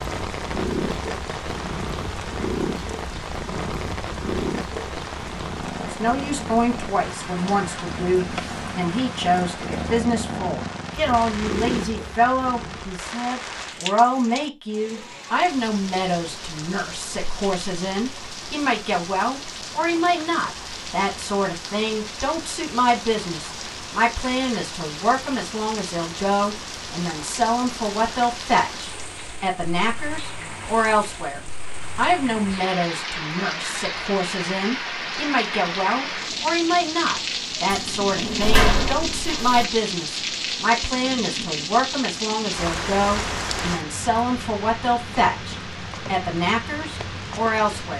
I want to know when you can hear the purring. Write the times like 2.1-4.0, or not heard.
0.0-13.1.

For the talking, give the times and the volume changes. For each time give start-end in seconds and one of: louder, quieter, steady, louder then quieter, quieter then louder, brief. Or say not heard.
5.8-47.9 steady.